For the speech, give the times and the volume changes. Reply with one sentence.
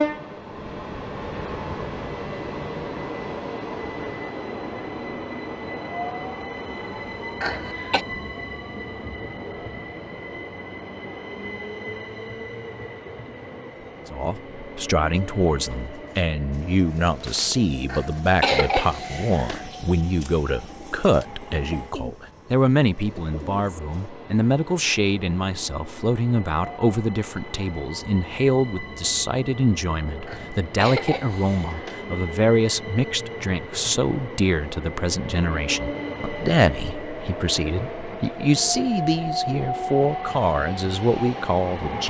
The speech can be heard from 14.1 to 42.0 s, at a steady volume.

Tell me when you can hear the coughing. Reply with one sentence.
You can hear the coughing from 7.4 to 8.1 s, from 17.9 to 19.7 s and from 30.2 to 32.0 s.